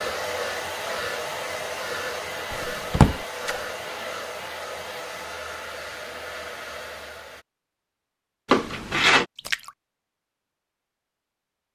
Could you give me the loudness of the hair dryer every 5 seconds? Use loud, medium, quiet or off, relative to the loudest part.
loud, medium, off.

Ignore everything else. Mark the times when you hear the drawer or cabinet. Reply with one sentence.
The drawer or cabinet can be heard from 2.5 to 3.2 s and from 8.5 to 9.2 s.